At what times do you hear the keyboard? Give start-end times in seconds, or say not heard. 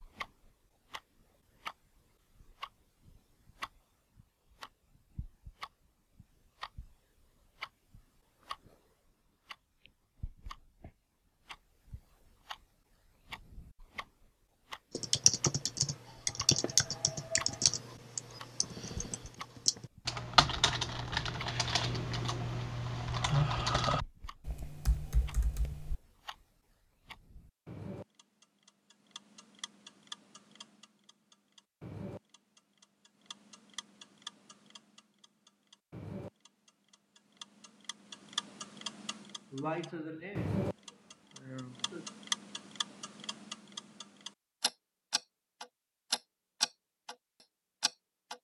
14.9-25.9.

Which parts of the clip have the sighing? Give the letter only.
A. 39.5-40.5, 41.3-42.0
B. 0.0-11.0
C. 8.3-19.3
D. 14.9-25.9
A.